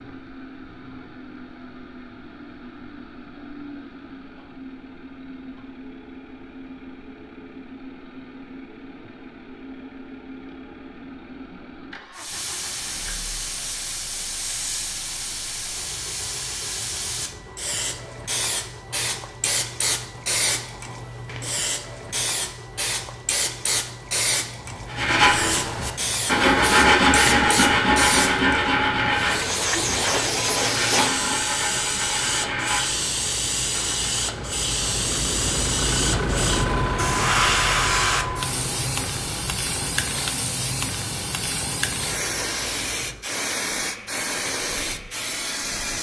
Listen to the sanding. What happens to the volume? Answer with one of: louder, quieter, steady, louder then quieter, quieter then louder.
quieter.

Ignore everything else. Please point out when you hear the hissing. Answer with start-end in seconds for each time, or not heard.
12.2-45.9.